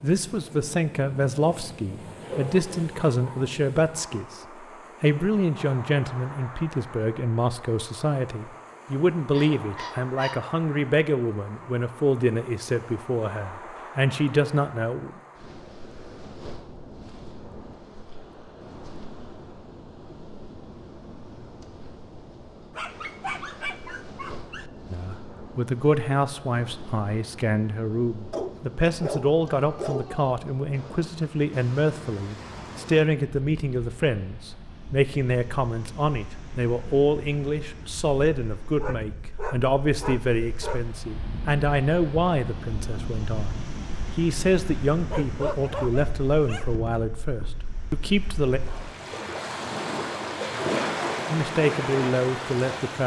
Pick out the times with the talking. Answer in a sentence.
The talking can be heard from 0.0 to 4.4 s, from 5.0 to 15.1 s, from 24.9 to 48.6 s and from 51.3 to 53.0 s.